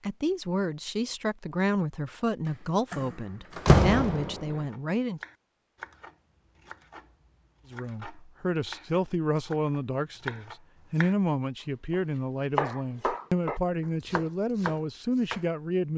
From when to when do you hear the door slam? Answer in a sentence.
You can hear the door slam from 2.9 to 4.5 s.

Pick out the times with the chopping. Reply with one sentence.
You can hear the chopping from 4.5 to 11.2 s and from 11.9 to 15.4 s.